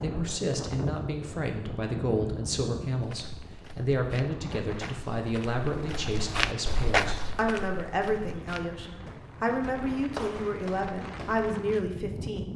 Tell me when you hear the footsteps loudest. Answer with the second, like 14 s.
7 s.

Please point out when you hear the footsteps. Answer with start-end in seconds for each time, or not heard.
3.0-11.5.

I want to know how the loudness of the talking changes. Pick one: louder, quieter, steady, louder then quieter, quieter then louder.
steady.